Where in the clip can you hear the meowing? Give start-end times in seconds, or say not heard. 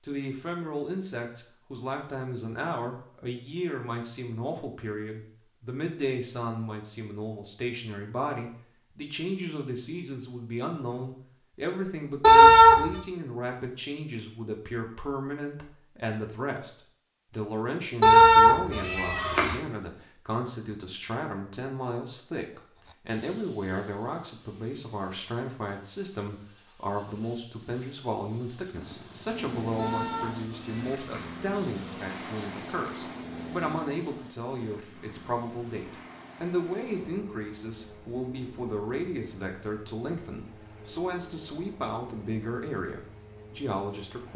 12.2-12.9, 18.0-19.6, 29.8-31.3.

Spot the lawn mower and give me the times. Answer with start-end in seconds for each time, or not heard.
28.7-44.3.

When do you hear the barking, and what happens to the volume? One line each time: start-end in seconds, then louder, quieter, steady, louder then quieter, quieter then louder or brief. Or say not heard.
not heard.